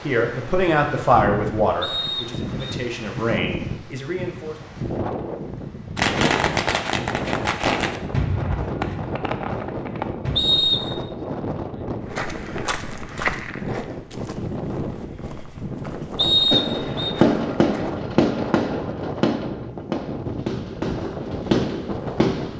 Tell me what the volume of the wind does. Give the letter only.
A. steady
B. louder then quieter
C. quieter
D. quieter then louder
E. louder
A.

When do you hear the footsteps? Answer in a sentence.
You can hear the footsteps from 12.1 to 17.9 s.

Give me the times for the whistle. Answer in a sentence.
You can hear the whistle from 1.8 to 2.8 s, from 10.3 to 10.9 s and from 16.1 to 17.1 s.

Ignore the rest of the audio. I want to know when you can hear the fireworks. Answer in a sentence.
The fireworks can be heard from 6.0 to 10.4 s and from 16.5 to 22.5 s.